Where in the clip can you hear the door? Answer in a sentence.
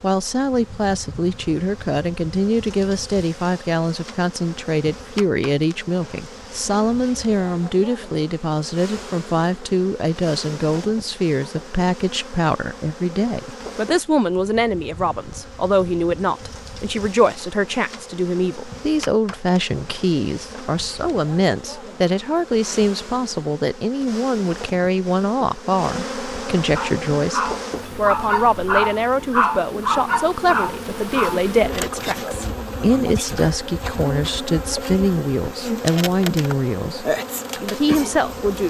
The door can't be heard in this clip.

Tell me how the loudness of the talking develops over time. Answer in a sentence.
The loudness of the talking stays about the same.